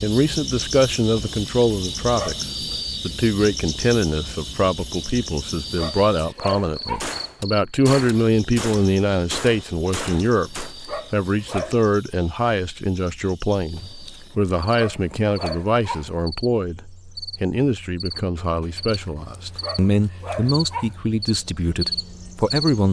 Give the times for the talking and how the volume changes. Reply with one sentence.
You can hear the talking from 0.0 to 22.8 s, at a steady volume.